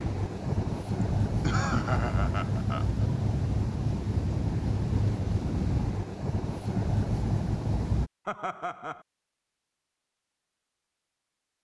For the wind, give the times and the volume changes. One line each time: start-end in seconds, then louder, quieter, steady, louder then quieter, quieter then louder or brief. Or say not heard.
0.0-8.1 steady.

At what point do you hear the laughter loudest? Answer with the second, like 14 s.
2 s.